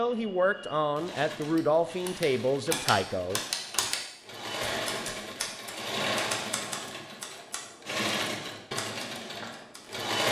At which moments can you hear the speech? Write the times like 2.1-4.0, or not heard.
0.0-3.4.